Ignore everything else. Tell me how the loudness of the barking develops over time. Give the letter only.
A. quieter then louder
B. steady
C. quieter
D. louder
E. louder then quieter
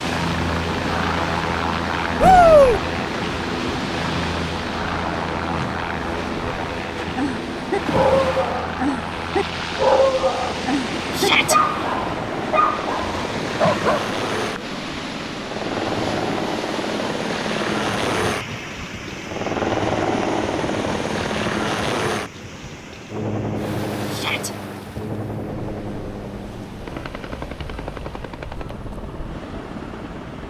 B.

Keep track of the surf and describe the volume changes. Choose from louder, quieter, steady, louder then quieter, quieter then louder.
quieter.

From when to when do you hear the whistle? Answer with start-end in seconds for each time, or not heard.
not heard.